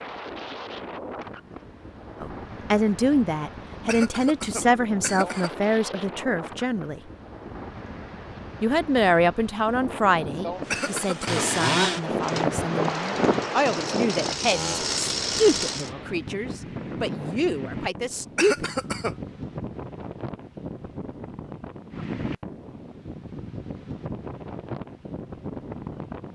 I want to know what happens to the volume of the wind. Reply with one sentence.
The loudness of the wind goes up, then down.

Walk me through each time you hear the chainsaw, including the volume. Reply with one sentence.
The chainsaw can be heard from 10.7 to 15.9 s, getting quieter then louder.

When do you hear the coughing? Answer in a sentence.
The coughing can be heard from 3.9 to 5.5 s, from 10.7 to 11.4 s and from 18.4 to 19.1 s.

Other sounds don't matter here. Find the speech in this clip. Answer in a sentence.
The speech can be heard from 2.2 to 7.0 s and from 8.6 to 18.7 s.